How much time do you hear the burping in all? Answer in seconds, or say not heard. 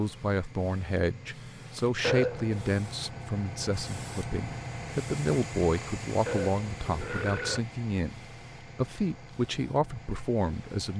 2 s.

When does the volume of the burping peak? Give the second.
2 s.